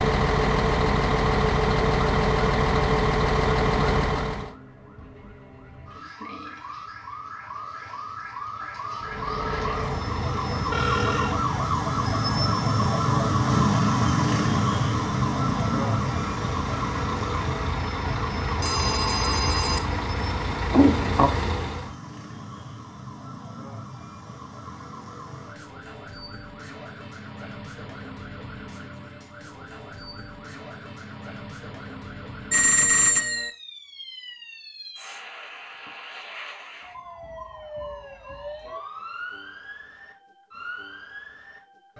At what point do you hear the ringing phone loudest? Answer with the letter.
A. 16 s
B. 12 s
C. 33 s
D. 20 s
C.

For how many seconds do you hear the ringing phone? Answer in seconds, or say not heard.
3 s.